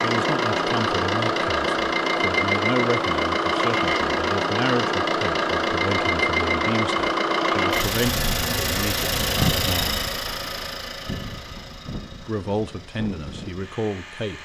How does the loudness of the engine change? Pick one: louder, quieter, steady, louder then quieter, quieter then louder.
quieter.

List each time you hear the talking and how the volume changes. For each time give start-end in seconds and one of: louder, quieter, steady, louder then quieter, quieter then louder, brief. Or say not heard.
0.0-10.1 steady
12.2-14.4 brief.